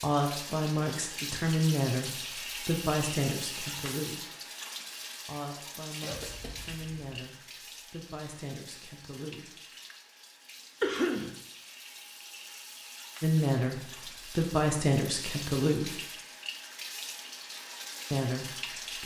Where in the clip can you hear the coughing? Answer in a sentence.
You can hear the coughing from 6.0 to 7.1 s and from 10.8 to 11.3 s.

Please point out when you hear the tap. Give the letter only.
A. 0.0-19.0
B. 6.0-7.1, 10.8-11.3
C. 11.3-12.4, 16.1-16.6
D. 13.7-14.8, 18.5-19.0
A.